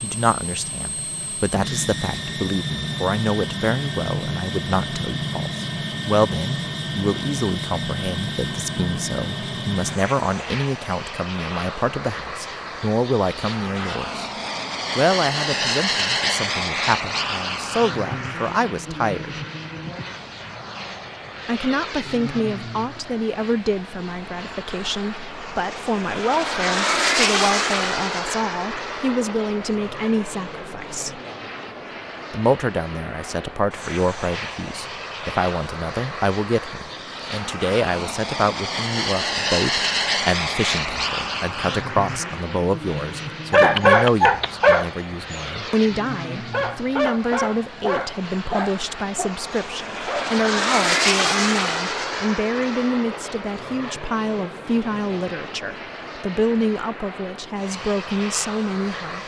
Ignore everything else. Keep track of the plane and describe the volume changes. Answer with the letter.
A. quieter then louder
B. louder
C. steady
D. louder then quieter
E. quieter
C.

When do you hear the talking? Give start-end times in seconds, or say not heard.
0.0-14.2, 14.9-19.4, 21.4-31.2, 32.3-59.2.